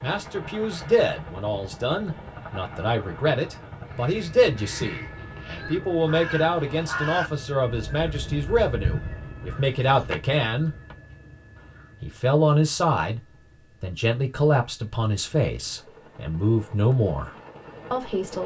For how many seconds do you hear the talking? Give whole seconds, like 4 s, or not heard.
16 s.